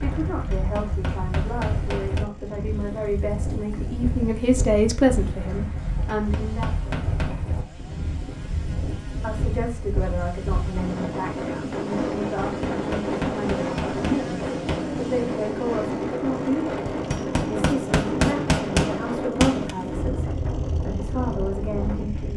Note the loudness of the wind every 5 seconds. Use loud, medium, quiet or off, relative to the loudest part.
medium, medium, loud, loud, loud.